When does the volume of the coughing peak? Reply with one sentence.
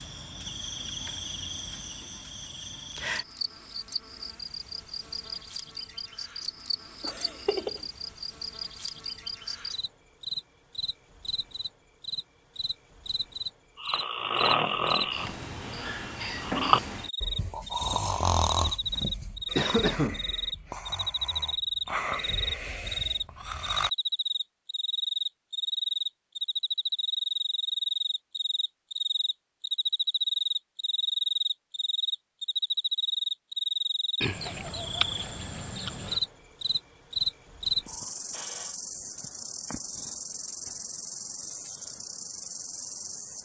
The loudest moment of the coughing is at 20 seconds.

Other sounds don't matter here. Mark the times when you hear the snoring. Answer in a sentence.
The snoring can be heard from 13.8 to 23.9 s.